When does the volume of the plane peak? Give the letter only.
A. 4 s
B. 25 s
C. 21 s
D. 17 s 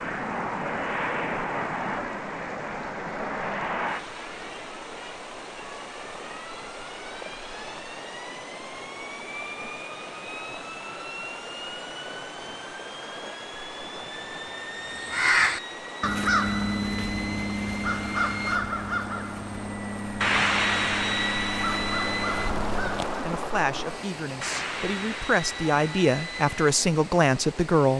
C.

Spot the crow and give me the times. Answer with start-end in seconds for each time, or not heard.
14.9-23.2.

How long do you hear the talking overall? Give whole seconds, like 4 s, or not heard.
5 s.